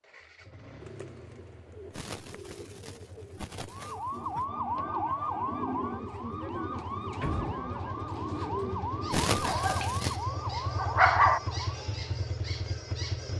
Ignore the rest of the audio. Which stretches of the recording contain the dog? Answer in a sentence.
You can hear the dog from 9.4 to 11.4 s.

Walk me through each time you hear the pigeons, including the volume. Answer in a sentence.
The pigeons can be heard from 0.8 to 9.3 s, getting louder.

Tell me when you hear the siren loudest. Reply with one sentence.
The volume of the siren peaks at 5 seconds.